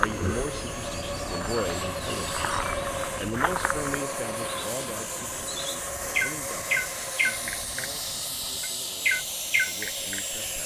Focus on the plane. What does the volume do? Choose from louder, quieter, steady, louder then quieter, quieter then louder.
steady.